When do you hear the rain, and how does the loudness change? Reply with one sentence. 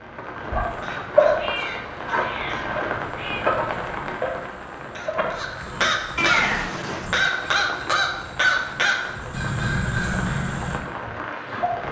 The rain can be heard from 0.0 to 11.8 s, getting quieter.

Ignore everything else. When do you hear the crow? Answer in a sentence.
You can hear the crow from 0.6 to 10.8 s.